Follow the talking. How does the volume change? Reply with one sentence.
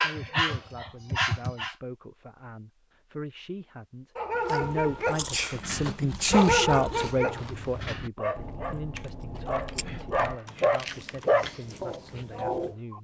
The volume of the talking goes up, then down.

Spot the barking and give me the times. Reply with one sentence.
The barking can be heard from 0.0 to 1.8 s and from 4.2 to 12.9 s.